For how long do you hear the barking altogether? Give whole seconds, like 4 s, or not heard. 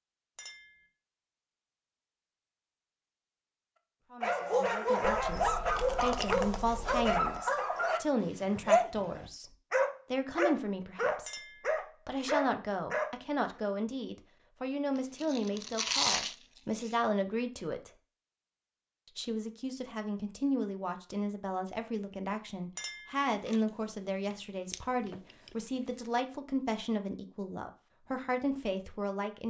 9 s.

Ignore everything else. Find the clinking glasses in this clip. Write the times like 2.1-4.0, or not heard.
0.3-0.8, 11.2-11.8, 22.8-23.2.